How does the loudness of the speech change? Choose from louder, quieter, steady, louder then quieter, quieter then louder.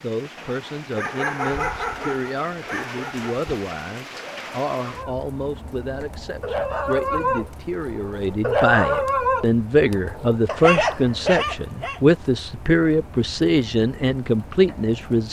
louder.